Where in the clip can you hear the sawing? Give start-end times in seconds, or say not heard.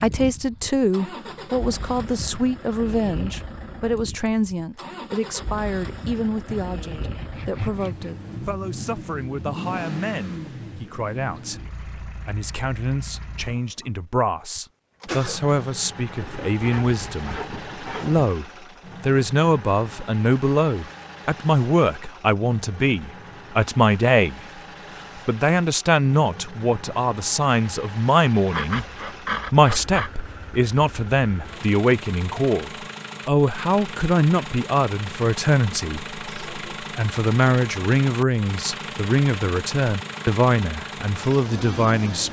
6.5-8.2, 16.2-18.4, 28.5-30.1.